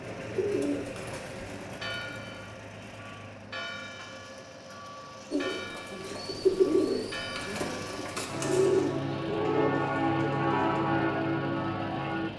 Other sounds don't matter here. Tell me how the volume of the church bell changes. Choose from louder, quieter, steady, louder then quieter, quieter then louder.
louder.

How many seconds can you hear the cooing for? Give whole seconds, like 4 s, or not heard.
7 s.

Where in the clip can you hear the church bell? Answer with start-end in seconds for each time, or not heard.
1.6-12.3.